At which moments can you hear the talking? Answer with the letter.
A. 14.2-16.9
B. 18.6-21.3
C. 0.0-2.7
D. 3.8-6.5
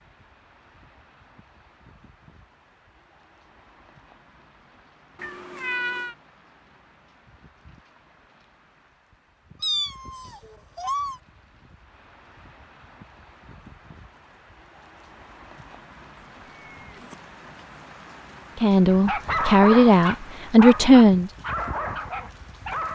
B.